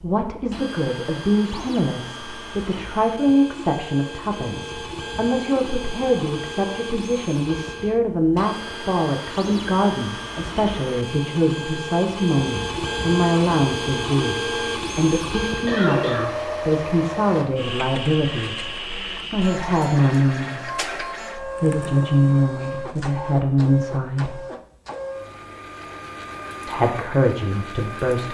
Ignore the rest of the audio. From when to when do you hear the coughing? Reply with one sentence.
The coughing can be heard from 15.7 to 16.4 s.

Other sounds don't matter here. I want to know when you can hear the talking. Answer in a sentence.
You can hear the talking from 0.0 to 18.7 s, from 19.3 to 24.4 s and from 26.6 to 28.3 s.